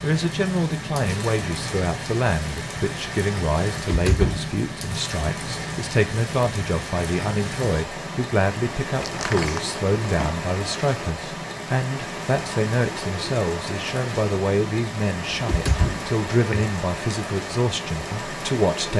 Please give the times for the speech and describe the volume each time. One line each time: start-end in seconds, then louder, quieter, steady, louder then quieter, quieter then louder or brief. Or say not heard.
0.0-18.9 steady.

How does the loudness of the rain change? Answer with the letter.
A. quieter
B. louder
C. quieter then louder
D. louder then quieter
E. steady
E.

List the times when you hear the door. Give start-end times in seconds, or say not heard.
3.9-4.5, 8.9-10.3, 15.3-16.6.